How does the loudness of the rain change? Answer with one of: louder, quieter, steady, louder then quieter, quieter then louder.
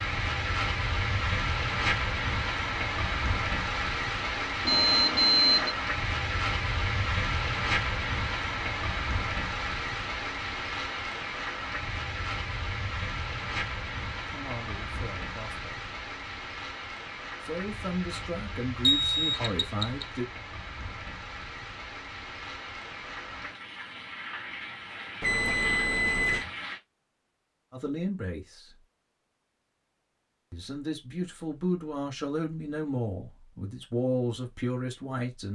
quieter.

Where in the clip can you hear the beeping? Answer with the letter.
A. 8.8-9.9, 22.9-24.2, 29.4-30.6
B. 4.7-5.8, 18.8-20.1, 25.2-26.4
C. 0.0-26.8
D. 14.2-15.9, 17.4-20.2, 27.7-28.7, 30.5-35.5
B.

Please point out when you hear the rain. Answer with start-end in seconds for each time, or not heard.
0.0-26.8.